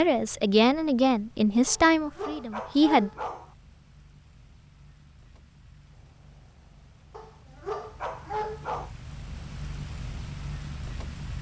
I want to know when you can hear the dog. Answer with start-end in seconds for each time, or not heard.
1.6-3.5, 7.1-8.9.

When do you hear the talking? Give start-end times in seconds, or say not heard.
0.0-3.1.